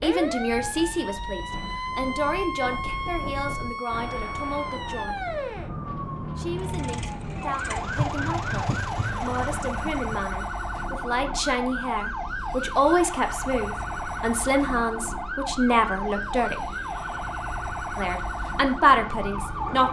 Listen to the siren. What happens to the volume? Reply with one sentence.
The loudness of the siren stays about the same.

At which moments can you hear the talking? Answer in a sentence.
The talking can be heard from 0.0 to 5.2 s, from 6.3 to 16.7 s and from 17.9 to 19.8 s.